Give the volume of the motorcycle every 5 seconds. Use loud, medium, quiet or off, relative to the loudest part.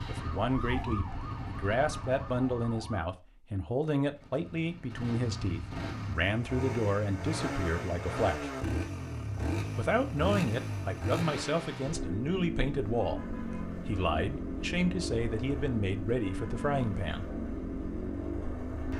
medium, loud, loud, loud.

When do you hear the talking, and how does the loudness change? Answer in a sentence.
The talking can be heard from 0.1 to 8.5 s, at a steady volume; and from 9.8 to 17.3 s, at a steady volume.